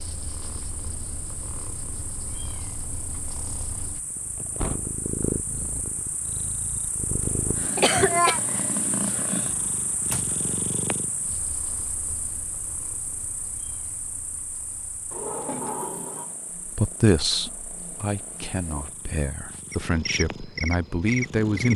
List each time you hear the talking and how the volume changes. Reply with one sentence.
You can hear the talking from 16.6 to 21.7 s, getting quieter then louder.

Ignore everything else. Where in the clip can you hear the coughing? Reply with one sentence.
The coughing can be heard from 7.8 to 8.4 s.